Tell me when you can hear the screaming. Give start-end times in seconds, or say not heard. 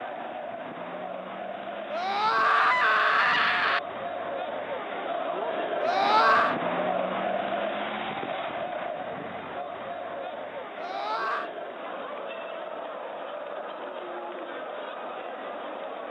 1.9-3.8, 5.8-6.5, 10.8-11.5.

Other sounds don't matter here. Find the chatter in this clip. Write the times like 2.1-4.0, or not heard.
0.0-16.0.